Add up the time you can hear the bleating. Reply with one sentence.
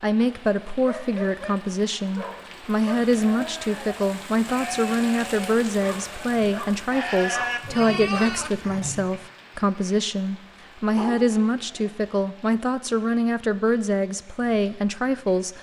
The bleating can be heard for 6 seconds in total.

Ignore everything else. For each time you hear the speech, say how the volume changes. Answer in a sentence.
The speech can be heard from 0.0 to 15.5 s, at a steady volume.